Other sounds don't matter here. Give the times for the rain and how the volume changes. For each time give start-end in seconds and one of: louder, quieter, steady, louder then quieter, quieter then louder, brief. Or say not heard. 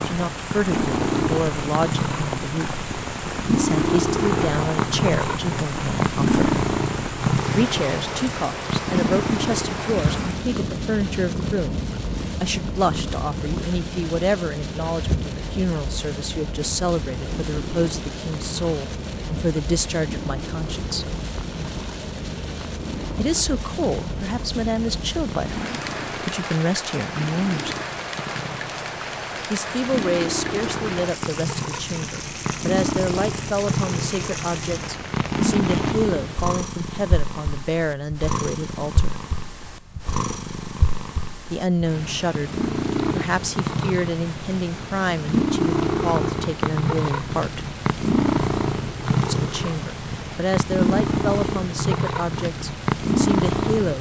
0.0-36.0 steady.